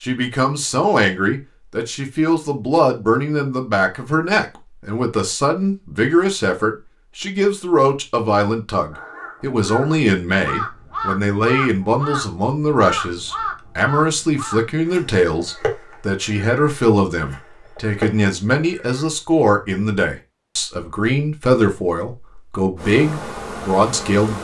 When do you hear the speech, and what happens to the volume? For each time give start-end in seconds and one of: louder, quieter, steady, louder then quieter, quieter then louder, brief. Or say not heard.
0.0-24.3 steady.